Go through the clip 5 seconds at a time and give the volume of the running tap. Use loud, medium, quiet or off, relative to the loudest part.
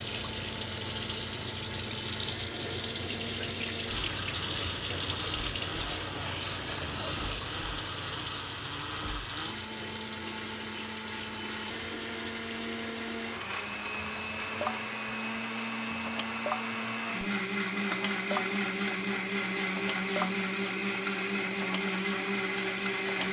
loud, loud, medium, medium, medium.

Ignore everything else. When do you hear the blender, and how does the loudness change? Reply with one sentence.
You can hear the blender from 0.0 to 23.2 s, getting louder.